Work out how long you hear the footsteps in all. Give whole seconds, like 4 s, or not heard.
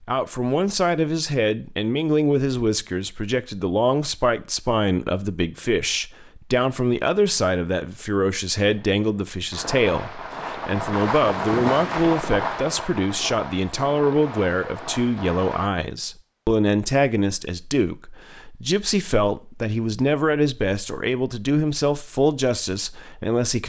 not heard.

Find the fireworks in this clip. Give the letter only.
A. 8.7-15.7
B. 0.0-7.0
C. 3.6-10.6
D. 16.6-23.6
A.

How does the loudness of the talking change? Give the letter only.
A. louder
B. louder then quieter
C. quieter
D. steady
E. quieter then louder
D.